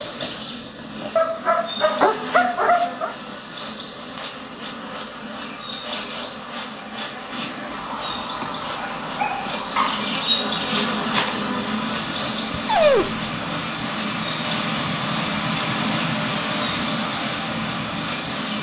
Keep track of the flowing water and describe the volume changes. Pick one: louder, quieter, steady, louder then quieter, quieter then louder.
louder.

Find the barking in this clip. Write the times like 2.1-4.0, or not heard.
1.1-3.1, 8.4-10.1, 12.4-13.3.